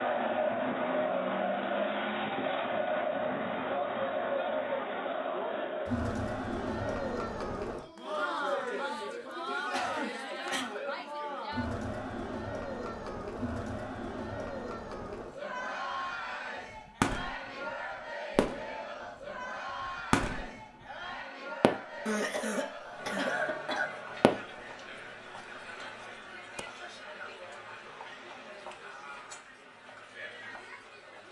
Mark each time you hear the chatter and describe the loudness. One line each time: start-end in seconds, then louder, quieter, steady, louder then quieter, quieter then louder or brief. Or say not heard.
0.0-31.2 quieter.